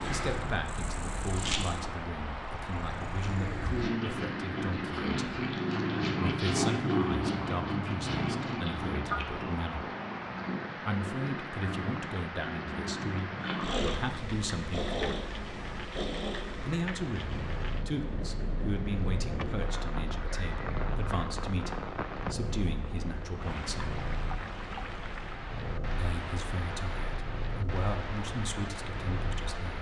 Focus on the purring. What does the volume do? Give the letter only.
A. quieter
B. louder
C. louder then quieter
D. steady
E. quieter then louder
A.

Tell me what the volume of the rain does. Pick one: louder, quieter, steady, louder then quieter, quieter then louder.
steady.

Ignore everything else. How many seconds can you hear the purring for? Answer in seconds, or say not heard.
30 s.